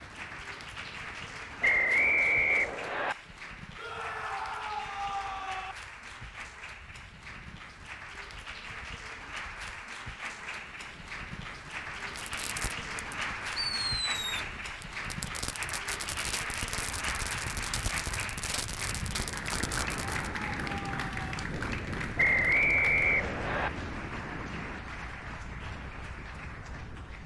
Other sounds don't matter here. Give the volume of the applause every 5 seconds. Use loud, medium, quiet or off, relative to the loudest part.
medium, medium, loud, loud, loud, medium.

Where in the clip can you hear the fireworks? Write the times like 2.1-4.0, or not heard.
12.2-20.3.